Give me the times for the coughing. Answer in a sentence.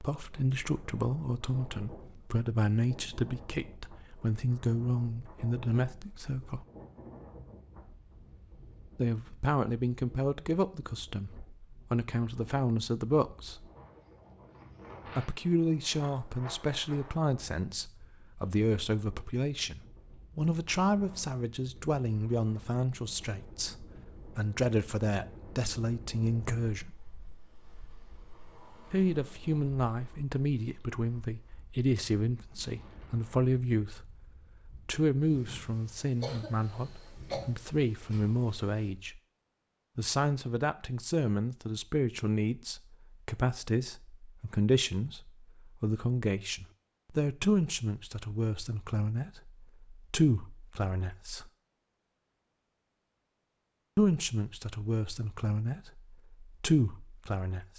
The coughing can be heard from 36.2 to 37.4 s.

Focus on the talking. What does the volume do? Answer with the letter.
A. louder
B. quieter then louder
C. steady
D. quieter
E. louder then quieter
C.